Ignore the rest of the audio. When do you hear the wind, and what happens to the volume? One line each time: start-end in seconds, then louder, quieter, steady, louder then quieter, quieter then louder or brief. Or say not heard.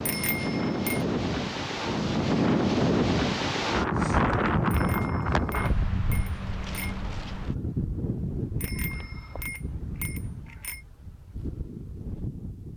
0.0-12.7 quieter.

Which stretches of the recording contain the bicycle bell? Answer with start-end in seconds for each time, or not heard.
0.1-1.1, 4.7-7.0, 8.6-10.8.